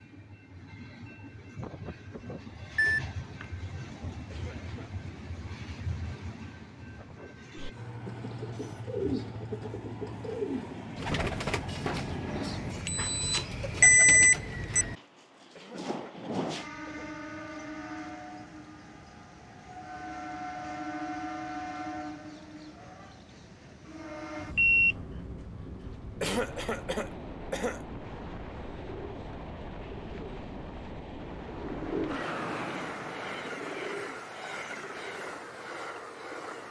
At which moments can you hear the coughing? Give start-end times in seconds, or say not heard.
4.3-4.9, 15.6-17.1, 26.2-27.8.